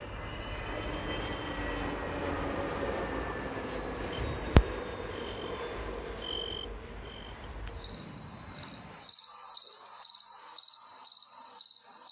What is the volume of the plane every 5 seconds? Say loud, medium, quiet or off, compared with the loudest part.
loud, medium, off.